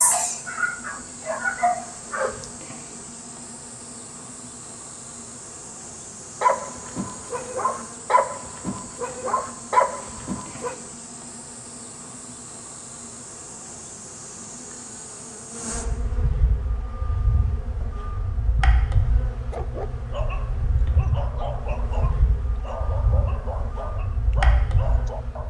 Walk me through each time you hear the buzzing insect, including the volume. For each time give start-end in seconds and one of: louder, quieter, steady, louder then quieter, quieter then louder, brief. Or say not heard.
0.0-25.4 louder.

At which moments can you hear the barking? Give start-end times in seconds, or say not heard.
0.0-2.5, 6.4-10.8, 19.5-25.4.